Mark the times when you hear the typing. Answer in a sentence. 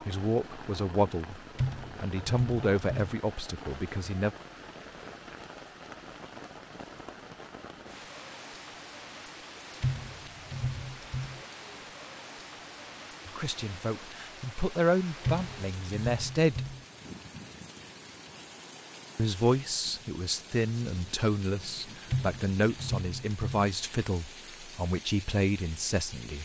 The typing can be heard from 1.6 to 3.1 s, from 9.8 to 11.4 s, from 15.2 to 16.9 s and from 22.1 to 23.7 s.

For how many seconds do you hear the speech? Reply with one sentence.
The speech can be heard for 15 seconds in total.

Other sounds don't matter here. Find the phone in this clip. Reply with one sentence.
The phone can't be heard in this clip.